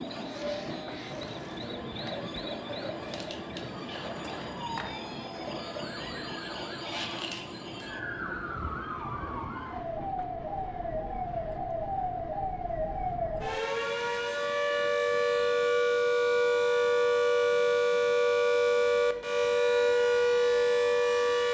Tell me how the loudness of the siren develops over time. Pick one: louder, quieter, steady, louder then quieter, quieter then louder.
louder.